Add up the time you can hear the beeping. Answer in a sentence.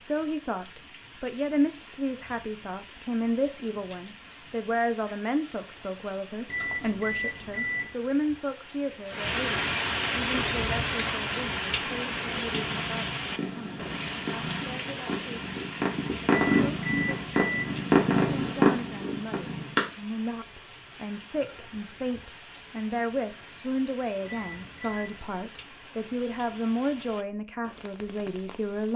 The beeping can be heard for 4 seconds in total.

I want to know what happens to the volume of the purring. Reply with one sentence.
The volume of the purring goes up.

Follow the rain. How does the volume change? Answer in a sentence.
The volume of the rain goes up, then down.